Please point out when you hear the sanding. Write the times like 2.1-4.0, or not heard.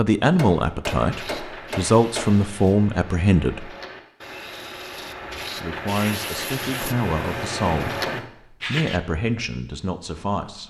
0.8-9.0.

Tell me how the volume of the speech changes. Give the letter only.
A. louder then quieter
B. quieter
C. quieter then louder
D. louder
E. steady
B.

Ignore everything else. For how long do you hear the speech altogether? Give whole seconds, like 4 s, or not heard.
9 s.